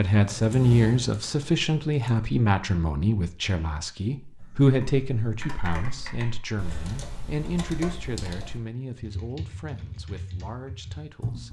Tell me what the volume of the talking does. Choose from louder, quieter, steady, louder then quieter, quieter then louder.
quieter.